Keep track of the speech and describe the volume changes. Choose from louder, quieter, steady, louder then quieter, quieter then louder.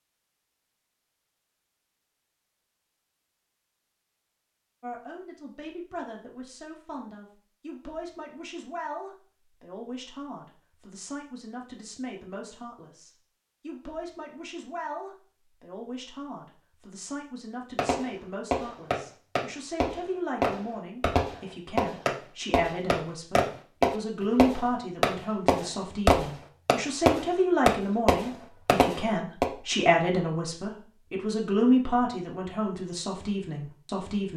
louder.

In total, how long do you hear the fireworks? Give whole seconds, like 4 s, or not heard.
12 s.